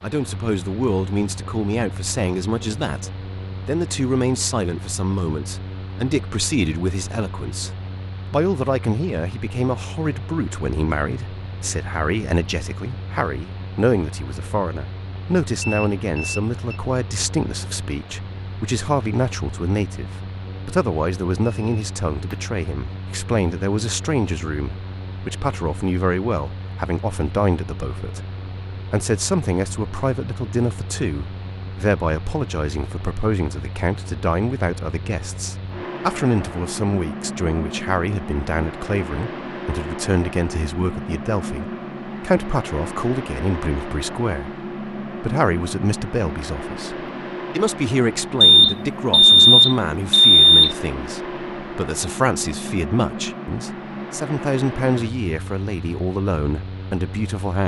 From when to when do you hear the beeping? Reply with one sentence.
The beeping can be heard from 15.6 to 16.8 s, from 21.4 to 22.4 s and from 48.4 to 50.8 s.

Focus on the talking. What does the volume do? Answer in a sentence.
The loudness of the talking stays about the same.